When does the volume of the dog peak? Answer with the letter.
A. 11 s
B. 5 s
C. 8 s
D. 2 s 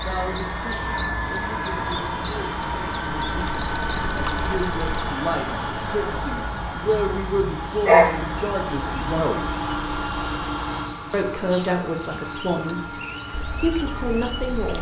C.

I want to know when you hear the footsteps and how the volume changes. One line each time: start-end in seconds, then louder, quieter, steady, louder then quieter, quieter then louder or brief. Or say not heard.
not heard.